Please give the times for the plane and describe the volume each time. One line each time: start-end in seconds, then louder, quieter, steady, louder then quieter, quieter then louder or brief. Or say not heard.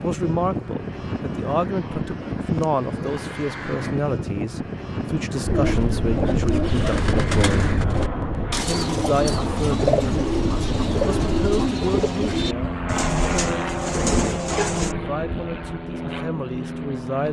0.0-17.2 steady.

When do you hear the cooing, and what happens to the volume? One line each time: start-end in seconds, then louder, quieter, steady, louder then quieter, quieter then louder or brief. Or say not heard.
5.4-14.9 steady.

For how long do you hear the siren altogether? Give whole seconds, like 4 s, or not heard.
not heard.